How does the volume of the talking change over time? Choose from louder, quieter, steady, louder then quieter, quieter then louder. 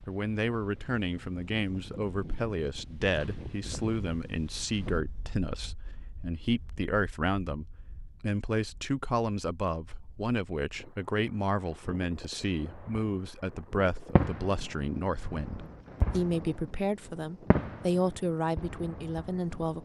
steady.